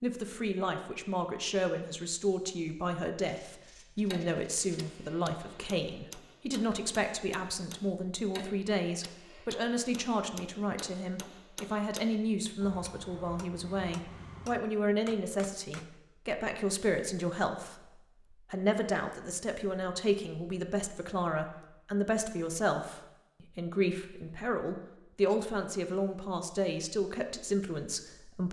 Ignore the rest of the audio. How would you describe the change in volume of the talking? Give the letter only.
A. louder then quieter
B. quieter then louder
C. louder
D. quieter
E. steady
E.